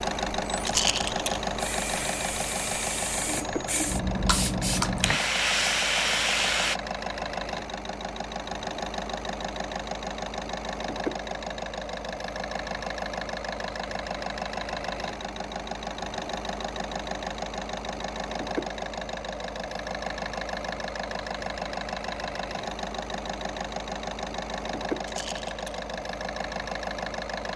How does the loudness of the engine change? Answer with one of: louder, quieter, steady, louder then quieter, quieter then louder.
steady.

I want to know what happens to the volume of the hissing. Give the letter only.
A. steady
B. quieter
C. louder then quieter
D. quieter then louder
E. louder
E.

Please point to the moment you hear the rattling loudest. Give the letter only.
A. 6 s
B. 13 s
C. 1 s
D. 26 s
C.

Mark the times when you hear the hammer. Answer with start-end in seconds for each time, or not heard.
not heard.